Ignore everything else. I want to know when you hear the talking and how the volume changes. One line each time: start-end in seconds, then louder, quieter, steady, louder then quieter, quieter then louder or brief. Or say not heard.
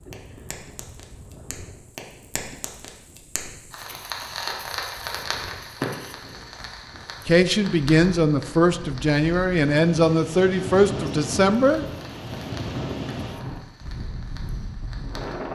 7.2-11.8 steady.